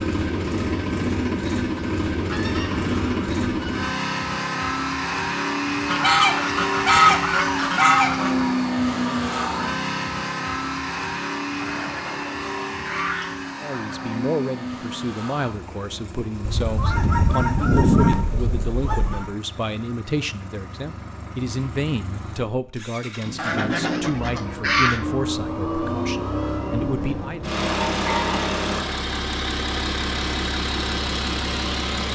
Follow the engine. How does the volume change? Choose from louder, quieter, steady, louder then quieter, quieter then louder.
quieter then louder.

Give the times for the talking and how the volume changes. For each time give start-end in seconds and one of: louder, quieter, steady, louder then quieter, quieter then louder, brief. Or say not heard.
13.6-27.4 steady.